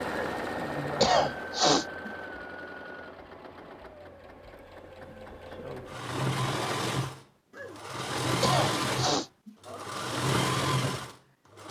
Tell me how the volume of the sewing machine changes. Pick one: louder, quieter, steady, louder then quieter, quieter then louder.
quieter then louder.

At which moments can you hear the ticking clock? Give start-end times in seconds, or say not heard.
not heard.